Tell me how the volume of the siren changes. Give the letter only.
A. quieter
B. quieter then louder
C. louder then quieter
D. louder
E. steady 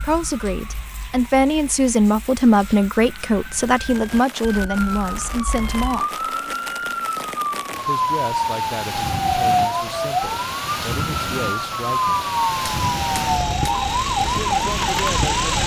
D.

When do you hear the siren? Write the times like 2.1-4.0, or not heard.
0.0-15.6.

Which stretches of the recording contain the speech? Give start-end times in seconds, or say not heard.
0.0-6.2, 7.8-12.3, 14.2-15.5.